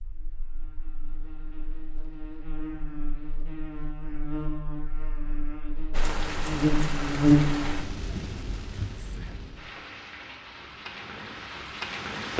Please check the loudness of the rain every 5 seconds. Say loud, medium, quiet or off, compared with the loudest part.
off, loud, loud.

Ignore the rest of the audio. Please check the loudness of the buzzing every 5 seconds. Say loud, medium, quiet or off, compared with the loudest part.
quiet, loud, off.